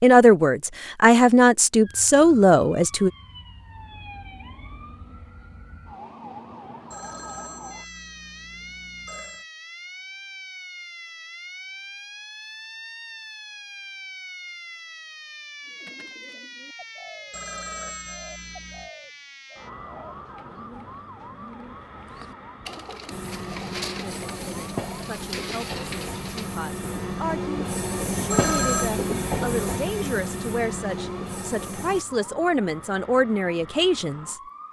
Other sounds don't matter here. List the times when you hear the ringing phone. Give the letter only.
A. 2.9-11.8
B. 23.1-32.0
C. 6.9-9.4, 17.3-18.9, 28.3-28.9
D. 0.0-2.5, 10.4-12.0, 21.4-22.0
C.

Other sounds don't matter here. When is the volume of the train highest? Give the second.
29 s.